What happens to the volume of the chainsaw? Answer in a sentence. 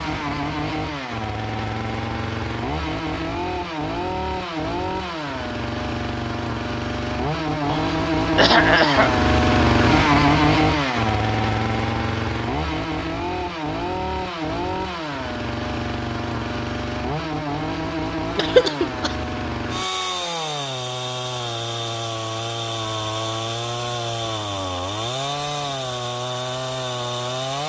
The loudness of the chainsaw goes up, then down.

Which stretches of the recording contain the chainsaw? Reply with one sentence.
The chainsaw can be heard from 0.0 to 27.6 s.